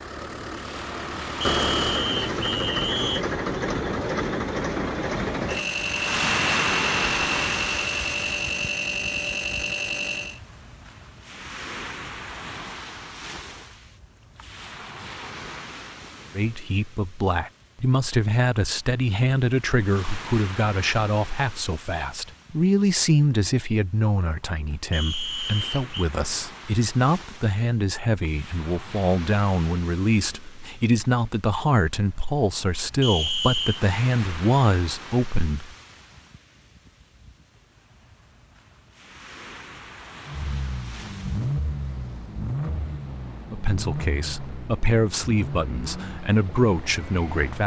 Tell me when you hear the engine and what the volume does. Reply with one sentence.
The engine can be heard from 0.0 to 10.4 s, at a steady volume; and from 40.2 to 47.6 s, getting quieter.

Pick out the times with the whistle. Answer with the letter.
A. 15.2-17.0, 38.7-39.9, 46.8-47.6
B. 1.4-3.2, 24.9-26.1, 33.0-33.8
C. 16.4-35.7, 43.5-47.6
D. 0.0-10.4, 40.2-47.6
B.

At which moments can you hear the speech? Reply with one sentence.
The speech can be heard from 16.4 to 35.7 s and from 43.5 to 47.6 s.